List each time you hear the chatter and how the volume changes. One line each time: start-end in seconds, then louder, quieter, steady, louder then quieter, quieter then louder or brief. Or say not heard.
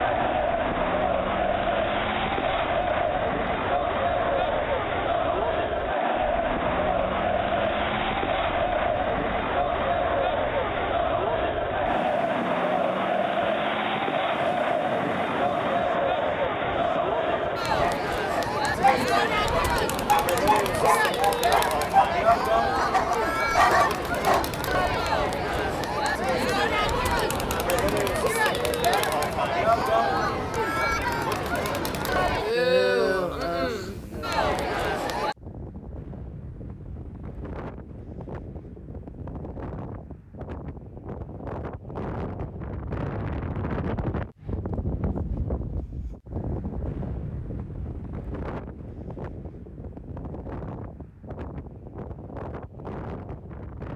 0.0-35.4 steady.